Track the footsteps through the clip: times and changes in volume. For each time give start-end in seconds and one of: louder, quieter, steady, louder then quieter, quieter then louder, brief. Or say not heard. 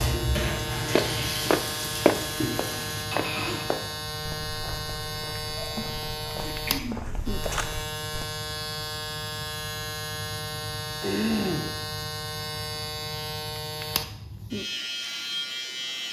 0.9-8.2 quieter then louder.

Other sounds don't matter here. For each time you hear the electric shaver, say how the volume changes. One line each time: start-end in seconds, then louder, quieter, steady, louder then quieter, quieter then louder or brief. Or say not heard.
0.0-16.0 steady.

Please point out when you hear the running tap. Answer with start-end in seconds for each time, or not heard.
0.0-3.0.